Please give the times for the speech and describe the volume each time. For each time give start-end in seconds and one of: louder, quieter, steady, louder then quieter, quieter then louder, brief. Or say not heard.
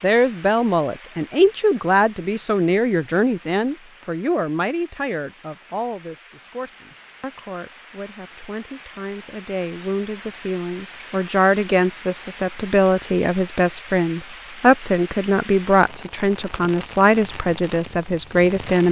0.0-18.8 quieter then louder.